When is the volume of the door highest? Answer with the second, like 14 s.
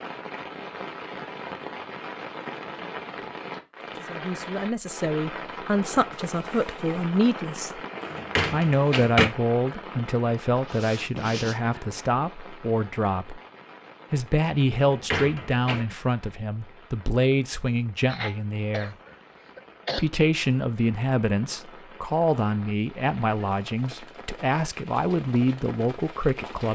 9 s.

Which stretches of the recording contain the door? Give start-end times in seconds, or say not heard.
8.0-9.3, 14.7-15.8.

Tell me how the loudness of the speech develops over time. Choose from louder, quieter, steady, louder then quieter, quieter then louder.
steady.